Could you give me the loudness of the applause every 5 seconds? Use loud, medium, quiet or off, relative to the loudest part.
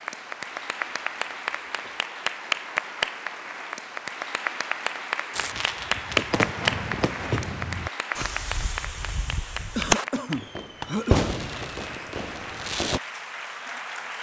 loud, loud, medium.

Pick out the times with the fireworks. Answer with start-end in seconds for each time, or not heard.
5.3-13.0.